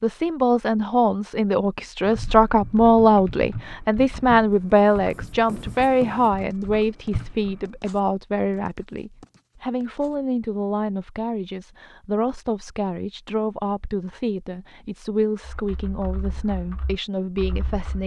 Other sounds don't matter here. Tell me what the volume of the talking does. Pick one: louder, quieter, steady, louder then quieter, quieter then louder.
quieter.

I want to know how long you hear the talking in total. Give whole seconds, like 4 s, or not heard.
18 s.